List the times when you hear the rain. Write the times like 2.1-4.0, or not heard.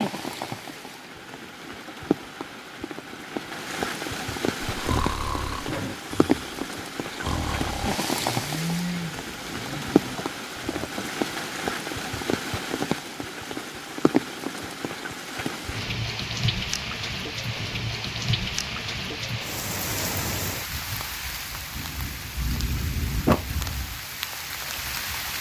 0.0-25.3.